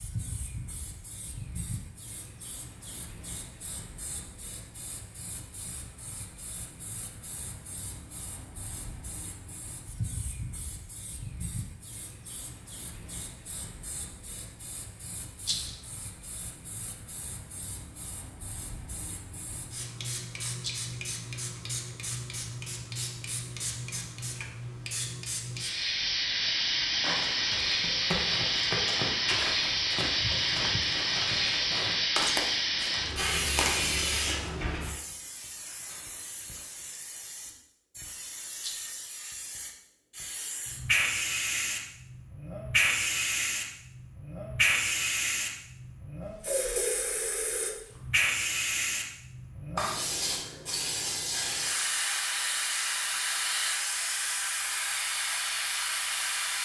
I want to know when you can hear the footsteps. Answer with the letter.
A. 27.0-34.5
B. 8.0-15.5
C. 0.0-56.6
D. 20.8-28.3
A.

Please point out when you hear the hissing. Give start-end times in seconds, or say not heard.
0.0-56.6.